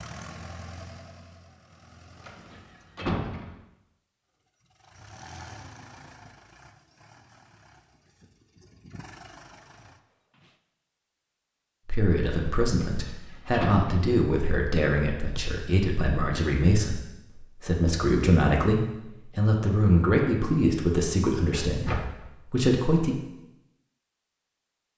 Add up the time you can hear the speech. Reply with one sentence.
The speech can be heard for 11 seconds in total.